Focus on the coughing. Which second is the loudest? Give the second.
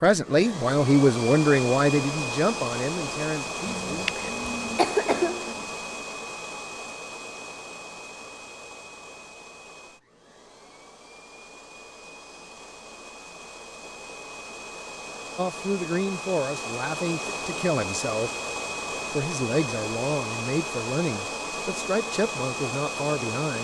5 s.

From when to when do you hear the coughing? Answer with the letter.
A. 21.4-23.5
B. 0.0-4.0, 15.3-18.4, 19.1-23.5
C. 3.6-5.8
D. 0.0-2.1
C.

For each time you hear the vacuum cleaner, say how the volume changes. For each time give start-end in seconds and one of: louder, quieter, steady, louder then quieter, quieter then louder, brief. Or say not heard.
0.0-23.5 quieter then louder.